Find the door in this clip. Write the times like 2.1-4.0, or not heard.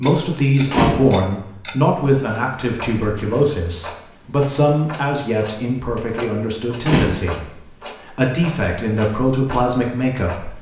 0.6-1.1, 6.8-7.4.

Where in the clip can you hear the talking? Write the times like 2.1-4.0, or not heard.
0.0-10.5.